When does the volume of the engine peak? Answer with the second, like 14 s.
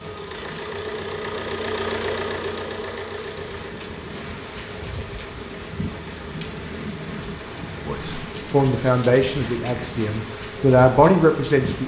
2 s.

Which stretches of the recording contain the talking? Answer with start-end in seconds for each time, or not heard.
7.8-11.8.